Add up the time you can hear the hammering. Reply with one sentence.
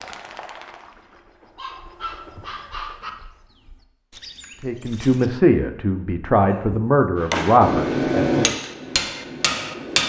The hammering can be heard for 3 seconds in total.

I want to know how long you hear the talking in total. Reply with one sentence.
The talking can be heard for 4 seconds in total.